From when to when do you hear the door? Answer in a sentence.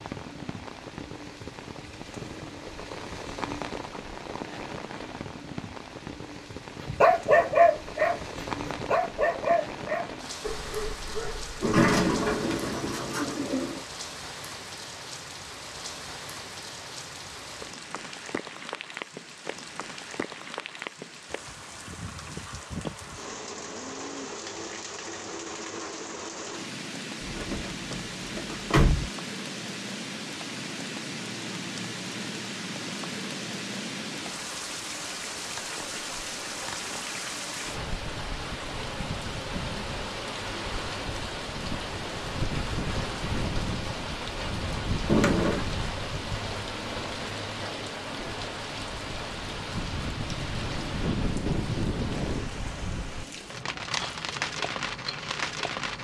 The door can be heard from 11.6 to 13.8 s, from 27.2 to 29.1 s and from 45.0 to 45.6 s.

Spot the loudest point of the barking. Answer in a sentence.
The loudest moment of the barking is at 7 seconds.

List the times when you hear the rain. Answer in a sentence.
The rain can be heard from 0.0 to 56.0 s.